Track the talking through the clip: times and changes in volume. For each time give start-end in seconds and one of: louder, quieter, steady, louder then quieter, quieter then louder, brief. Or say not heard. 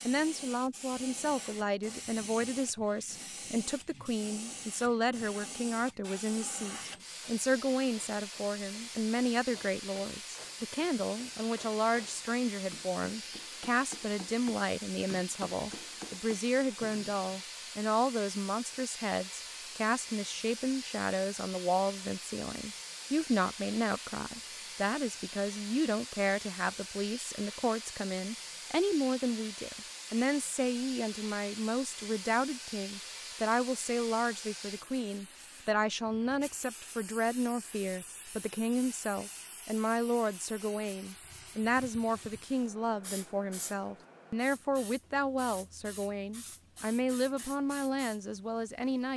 0.1-49.1 steady.